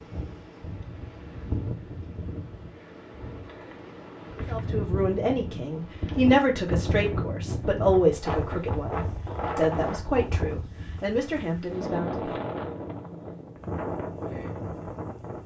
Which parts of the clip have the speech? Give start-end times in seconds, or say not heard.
4.5-12.4.